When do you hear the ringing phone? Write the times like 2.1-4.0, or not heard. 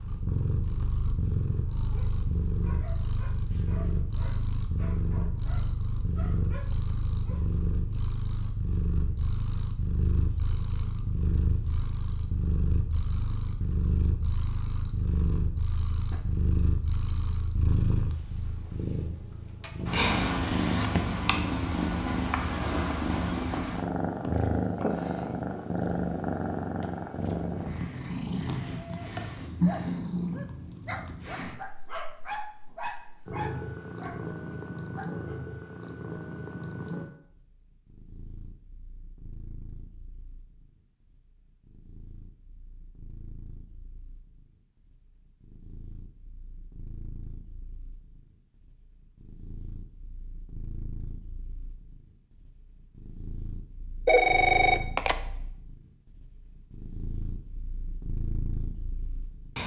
54.0-55.1.